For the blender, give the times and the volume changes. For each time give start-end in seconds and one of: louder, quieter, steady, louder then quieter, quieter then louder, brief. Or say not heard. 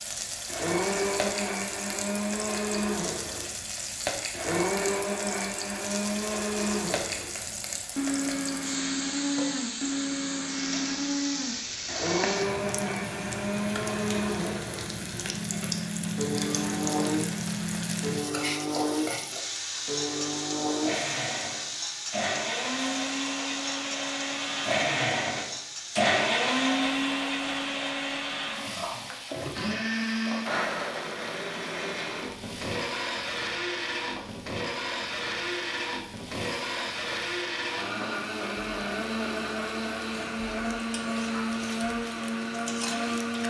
0.0-43.4 steady.